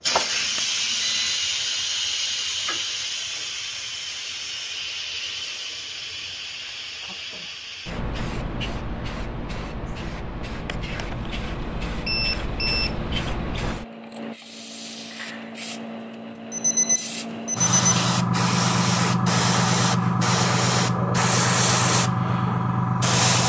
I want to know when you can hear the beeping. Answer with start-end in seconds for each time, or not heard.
0.1-1.4, 10.7-11.3, 12.1-12.9, 16.5-17.9.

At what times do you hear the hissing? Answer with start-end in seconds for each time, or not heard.
0.0-23.4.